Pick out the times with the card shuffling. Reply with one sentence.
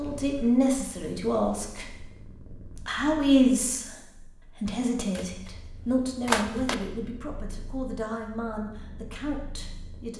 You can hear the card shuffling from 5.2 to 6.8 s.